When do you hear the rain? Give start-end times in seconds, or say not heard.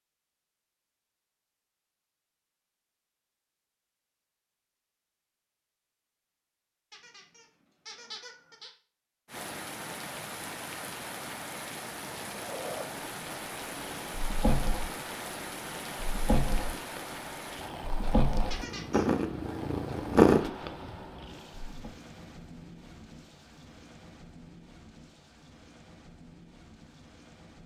9.2-27.6.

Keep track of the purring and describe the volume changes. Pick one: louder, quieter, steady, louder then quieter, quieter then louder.
louder.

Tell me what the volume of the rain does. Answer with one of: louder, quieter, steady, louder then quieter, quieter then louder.
quieter.